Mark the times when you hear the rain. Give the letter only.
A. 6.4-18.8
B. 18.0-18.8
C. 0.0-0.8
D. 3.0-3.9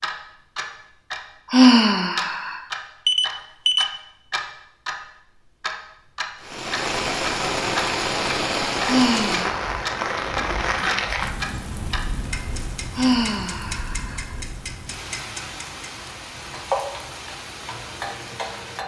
A.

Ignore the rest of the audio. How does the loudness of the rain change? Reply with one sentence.
The volume of the rain goes down.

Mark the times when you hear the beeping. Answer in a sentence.
You can hear the beeping from 3.0 to 3.9 s.